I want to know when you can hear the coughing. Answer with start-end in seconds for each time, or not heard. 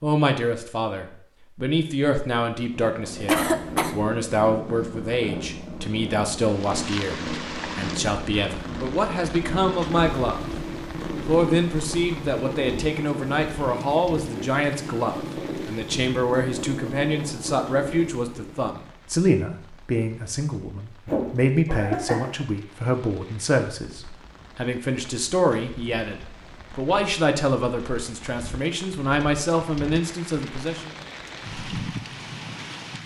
3.2-4.0, 21.1-22.4.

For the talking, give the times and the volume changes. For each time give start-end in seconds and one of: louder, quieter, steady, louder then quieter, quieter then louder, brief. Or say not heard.
0.0-10.4 steady
11.2-30.9 steady.